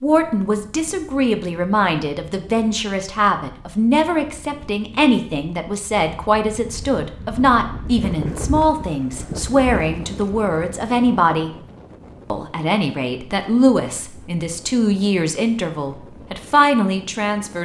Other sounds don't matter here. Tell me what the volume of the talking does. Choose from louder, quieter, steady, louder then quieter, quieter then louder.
steady.